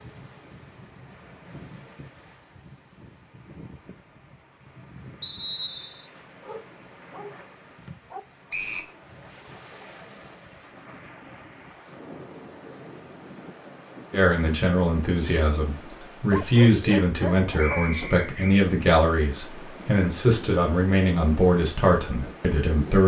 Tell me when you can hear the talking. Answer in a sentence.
The talking can be heard from 14.1 to 23.0 s.